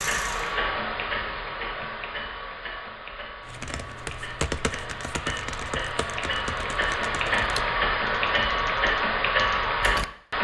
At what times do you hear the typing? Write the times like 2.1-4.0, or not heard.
3.5-10.1.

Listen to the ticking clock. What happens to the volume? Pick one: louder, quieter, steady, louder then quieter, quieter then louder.
quieter then louder.